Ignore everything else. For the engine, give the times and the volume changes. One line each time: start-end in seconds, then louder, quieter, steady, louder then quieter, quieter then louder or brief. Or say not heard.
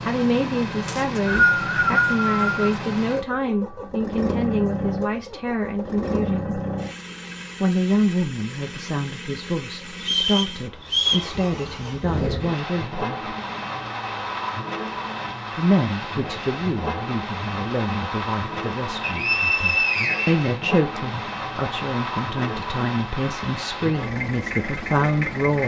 0.0-25.6 steady.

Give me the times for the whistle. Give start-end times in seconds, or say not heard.
0.8-2.7, 10.0-11.3, 19.0-21.0.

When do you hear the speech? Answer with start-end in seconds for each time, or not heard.
0.0-6.5, 7.6-13.3, 15.6-25.6.